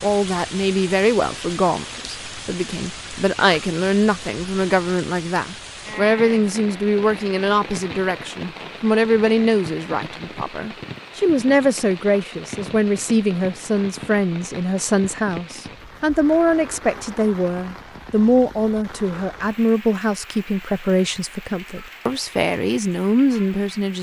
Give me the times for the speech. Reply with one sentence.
The speech can be heard from 0.0 to 23.9 s.